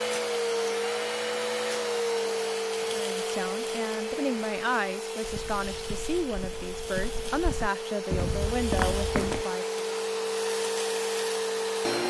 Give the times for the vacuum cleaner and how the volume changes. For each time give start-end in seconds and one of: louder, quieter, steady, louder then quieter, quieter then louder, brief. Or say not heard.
0.0-12.0 quieter then louder.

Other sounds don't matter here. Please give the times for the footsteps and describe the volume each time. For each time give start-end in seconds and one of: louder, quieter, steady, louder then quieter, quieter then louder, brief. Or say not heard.
5.2-9.4 louder.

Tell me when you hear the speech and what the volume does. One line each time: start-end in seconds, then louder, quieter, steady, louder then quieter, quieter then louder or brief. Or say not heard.
2.9-9.8 steady.